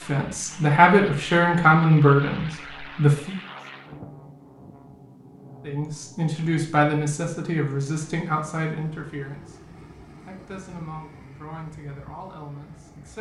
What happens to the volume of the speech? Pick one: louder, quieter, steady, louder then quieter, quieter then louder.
quieter.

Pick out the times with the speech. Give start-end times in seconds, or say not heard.
0.0-3.4, 5.7-13.1.